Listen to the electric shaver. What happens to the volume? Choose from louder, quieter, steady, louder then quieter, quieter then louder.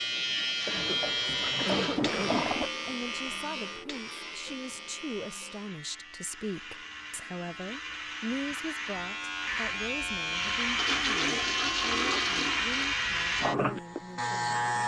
quieter then louder.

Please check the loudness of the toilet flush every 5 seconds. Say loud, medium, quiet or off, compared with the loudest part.
loud, off, loud.